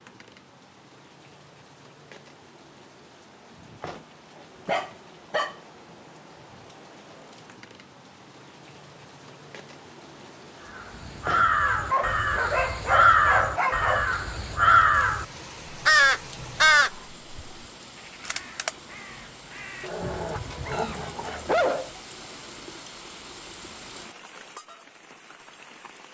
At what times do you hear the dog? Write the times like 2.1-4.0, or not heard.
4.7-5.5, 11.9-14.1, 19.8-21.9.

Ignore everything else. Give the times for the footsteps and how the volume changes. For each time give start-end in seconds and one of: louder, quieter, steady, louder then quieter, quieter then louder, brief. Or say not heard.
not heard.